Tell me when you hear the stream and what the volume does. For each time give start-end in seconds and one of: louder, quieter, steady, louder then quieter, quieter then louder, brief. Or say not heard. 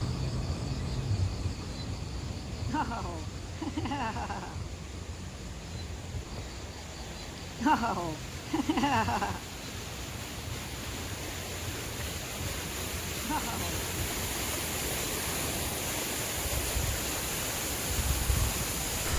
0.0-19.1 louder.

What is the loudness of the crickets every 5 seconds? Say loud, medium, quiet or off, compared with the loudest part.
loud, medium, medium, loud.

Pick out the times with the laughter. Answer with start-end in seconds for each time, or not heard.
2.6-4.6, 7.6-9.4, 13.2-13.8.